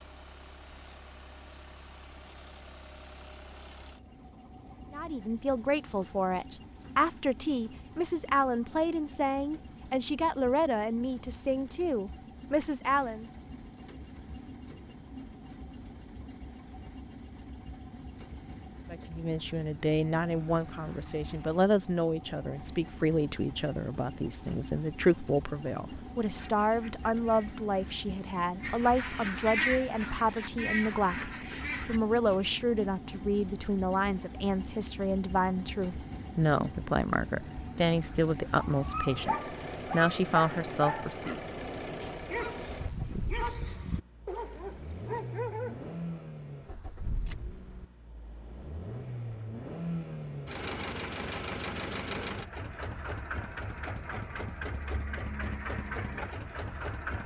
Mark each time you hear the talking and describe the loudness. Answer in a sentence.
The talking can be heard from 4.9 to 13.3 s, at a steady volume; and from 18.9 to 41.4 s, at a steady volume.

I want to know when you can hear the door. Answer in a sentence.
The door can't be heard in this clip.